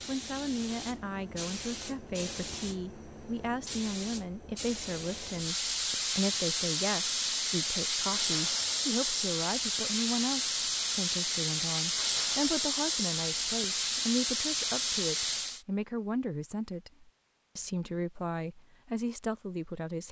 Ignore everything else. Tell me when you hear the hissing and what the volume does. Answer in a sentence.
The hissing can be heard from 0.0 to 15.6 s, getting louder.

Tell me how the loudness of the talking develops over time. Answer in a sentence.
The loudness of the talking stays about the same.